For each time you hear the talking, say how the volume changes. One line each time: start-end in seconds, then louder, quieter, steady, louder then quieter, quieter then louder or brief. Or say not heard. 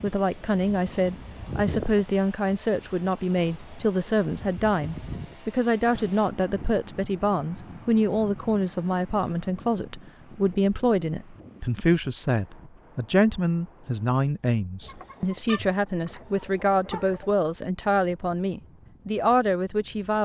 0.0-20.2 steady.